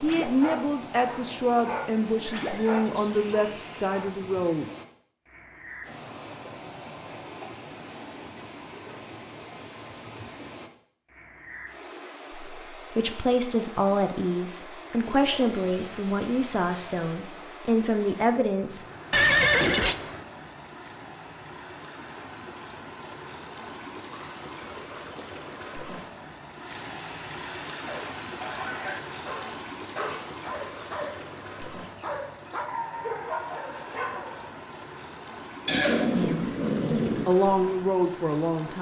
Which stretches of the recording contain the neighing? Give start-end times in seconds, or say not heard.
2.4-4.0, 19.1-19.9, 35.6-37.3.